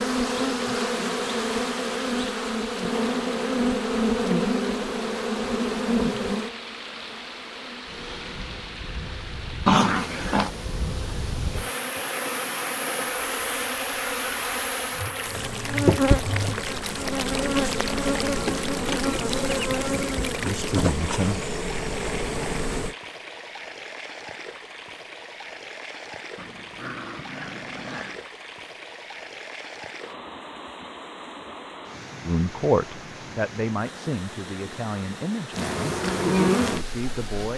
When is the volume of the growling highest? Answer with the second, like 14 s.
10 s.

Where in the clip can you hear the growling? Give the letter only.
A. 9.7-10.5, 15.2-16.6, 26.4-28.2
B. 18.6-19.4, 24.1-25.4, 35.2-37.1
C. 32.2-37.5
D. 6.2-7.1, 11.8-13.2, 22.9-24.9
A.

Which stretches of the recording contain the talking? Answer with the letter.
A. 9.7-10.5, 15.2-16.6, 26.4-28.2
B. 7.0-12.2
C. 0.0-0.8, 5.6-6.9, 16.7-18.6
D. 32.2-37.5
D.